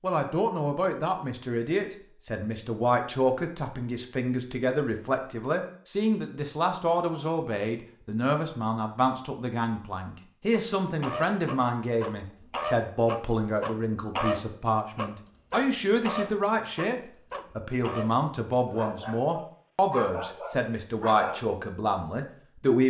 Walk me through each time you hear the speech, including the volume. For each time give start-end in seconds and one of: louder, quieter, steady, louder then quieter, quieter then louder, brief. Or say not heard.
0.0-22.8 steady.